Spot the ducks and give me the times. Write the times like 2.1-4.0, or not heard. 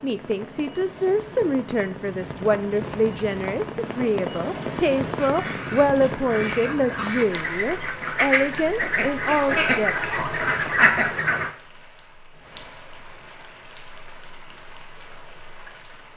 5.2-11.5.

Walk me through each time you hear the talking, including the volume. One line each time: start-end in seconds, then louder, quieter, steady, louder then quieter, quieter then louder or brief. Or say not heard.
0.0-9.9 steady.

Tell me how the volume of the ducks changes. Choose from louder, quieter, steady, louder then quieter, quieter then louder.
louder.